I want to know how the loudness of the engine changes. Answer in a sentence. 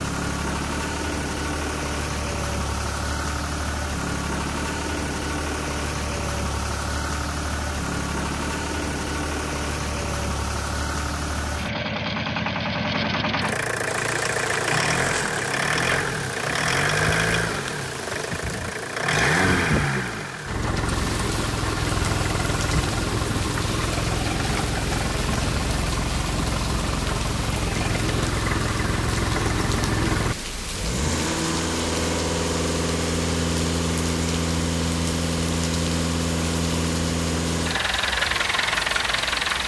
The volume of the engine stays about the same.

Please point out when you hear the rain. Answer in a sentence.
The rain can be heard from 13.8 to 39.6 s.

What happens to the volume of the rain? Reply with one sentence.
The volume of the rain stays about the same.